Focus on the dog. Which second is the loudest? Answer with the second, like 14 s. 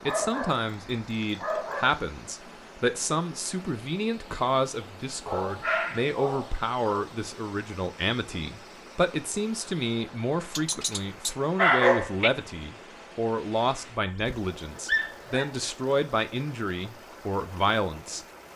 12 s.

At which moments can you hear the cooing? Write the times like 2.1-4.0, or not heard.
not heard.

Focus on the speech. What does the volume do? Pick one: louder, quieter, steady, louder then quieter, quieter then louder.
steady.